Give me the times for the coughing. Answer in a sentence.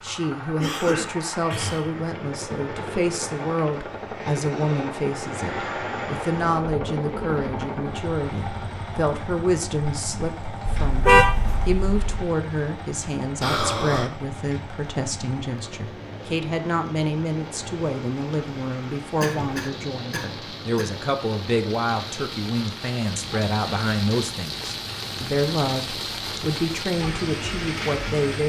You can hear the coughing from 0.6 to 2.0 s, from 13.4 to 14.1 s and from 19.2 to 21.0 s.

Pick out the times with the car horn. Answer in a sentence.
The car horn can be heard from 10.7 to 12.1 s.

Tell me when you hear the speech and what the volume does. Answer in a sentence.
The speech can be heard from 0.0 to 28.4 s, at a steady volume.